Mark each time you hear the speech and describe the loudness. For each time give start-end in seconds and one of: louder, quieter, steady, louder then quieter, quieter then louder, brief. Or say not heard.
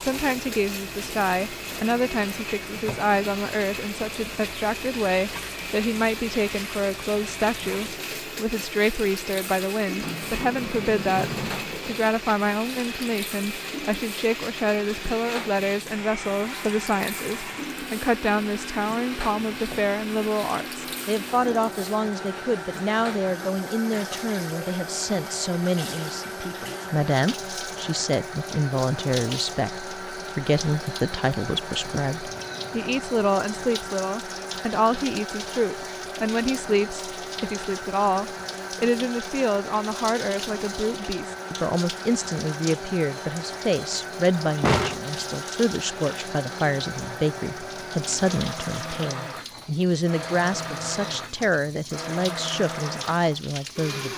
0.0-54.1 steady.